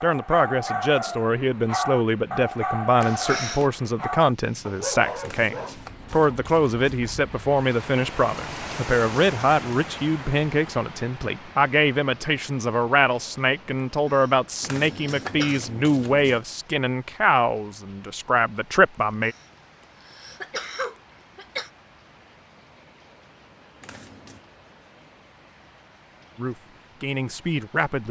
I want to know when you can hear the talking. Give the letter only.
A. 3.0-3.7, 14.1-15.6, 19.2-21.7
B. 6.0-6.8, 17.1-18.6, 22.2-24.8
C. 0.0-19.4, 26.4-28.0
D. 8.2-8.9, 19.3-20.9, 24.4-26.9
C.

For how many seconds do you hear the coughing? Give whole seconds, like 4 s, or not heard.
5 s.